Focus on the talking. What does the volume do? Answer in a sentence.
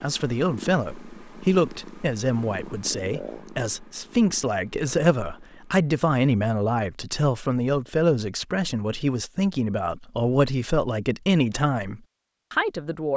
The volume of the talking stays about the same.